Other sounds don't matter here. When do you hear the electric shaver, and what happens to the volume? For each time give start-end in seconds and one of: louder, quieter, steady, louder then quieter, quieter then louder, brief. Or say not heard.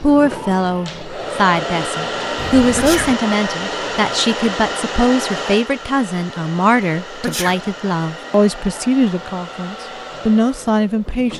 not heard.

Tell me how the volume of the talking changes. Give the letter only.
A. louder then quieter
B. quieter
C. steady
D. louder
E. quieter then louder
C.